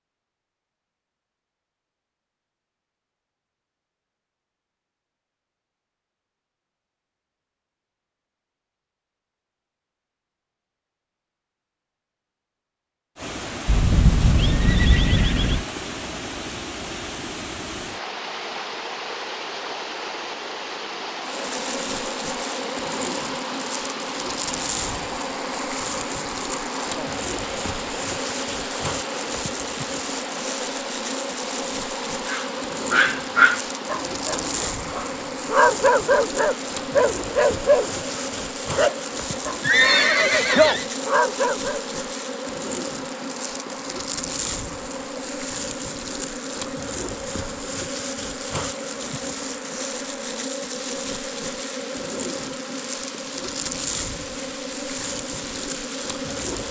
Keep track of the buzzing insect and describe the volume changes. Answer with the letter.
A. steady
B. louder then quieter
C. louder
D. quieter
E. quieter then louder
A.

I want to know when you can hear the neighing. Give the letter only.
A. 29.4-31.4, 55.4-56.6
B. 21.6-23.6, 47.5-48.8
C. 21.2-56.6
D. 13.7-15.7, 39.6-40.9
D.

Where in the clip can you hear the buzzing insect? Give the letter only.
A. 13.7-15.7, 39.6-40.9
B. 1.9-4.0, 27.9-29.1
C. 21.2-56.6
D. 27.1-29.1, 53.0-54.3
C.